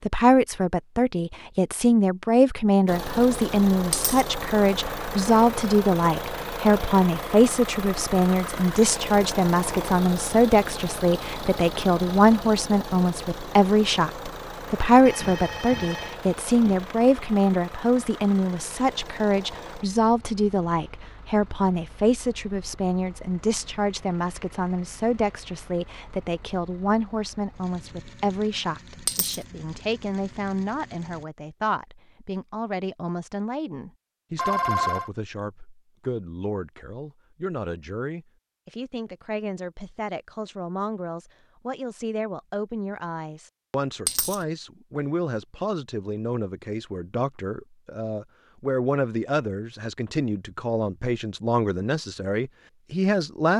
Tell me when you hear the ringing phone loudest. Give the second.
35 s.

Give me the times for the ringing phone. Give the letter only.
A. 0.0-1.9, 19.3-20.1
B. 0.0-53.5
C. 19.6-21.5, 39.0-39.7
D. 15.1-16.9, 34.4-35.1
D.